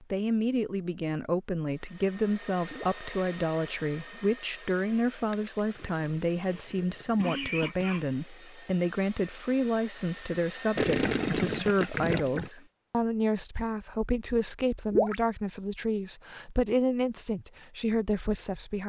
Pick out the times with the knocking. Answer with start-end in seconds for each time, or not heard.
not heard.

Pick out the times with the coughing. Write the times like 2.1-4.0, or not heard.
6.3-8.2.